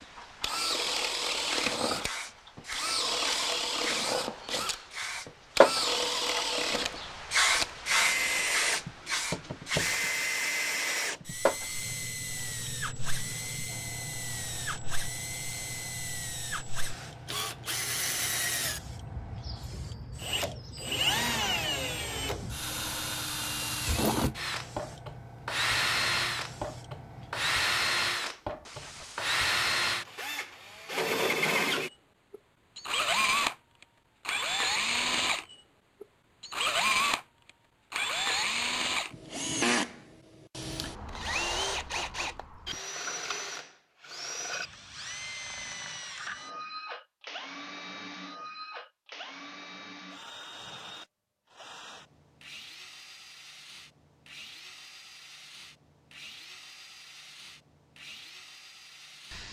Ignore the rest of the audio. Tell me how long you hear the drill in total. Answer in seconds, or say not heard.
59 s.